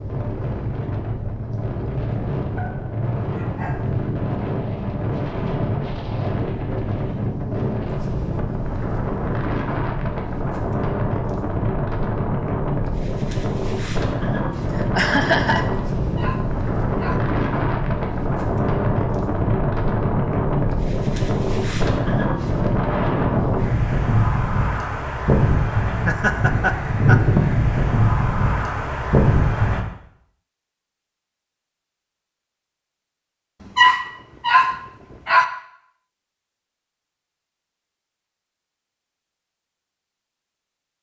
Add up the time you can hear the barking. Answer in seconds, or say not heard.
5 s.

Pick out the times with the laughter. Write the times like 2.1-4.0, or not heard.
14.7-15.7, 26.1-27.2.